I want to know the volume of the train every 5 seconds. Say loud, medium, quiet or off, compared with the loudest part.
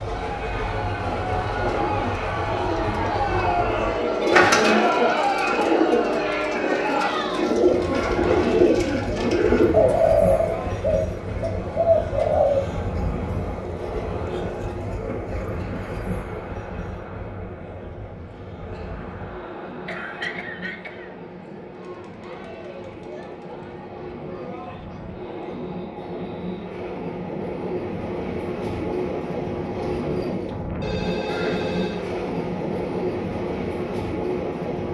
loud, loud, loud, medium, medium, loud, loud.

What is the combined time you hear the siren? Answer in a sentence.
You can't hear the siren here.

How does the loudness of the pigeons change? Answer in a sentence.
The loudness of the pigeons goes up.